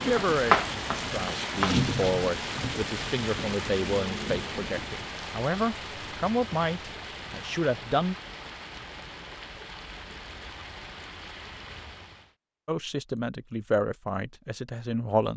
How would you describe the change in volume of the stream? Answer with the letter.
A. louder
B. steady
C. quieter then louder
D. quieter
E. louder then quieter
D.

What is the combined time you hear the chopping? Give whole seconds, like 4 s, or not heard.
2 s.